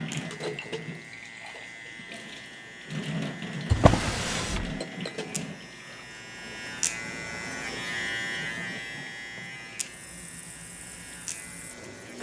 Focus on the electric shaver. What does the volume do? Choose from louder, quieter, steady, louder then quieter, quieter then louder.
louder then quieter.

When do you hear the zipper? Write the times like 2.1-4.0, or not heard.
not heard.